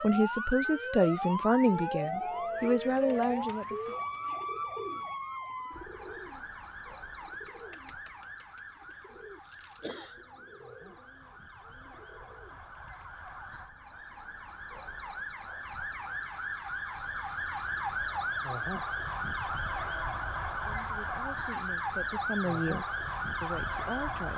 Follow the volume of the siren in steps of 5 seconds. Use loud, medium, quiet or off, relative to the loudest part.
loud, medium, quiet, loud, loud.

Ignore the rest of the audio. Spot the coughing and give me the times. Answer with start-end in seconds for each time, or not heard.
8.9-10.2.